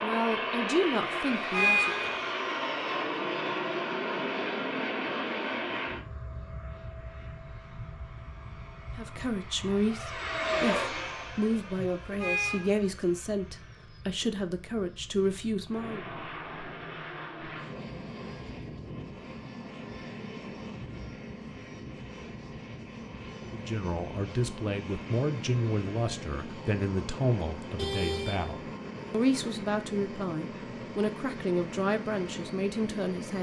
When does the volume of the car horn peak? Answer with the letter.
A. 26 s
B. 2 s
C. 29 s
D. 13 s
B.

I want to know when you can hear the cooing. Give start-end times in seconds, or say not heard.
not heard.